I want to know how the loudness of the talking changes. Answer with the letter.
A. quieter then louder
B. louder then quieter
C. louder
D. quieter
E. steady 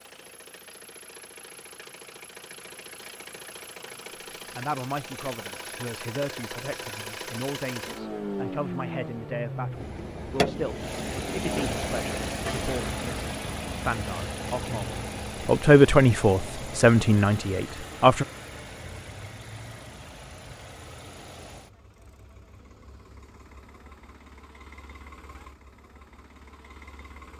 C.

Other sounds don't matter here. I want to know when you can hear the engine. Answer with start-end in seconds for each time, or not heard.
0.0-27.3.